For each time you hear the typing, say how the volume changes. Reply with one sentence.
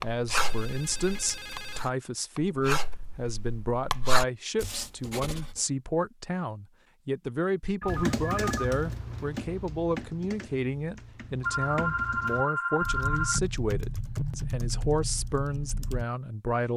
The typing can be heard from 7.8 to 16.1 s, getting quieter then louder.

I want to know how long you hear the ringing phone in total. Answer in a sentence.
You can hear the ringing phone for 5 seconds altogether.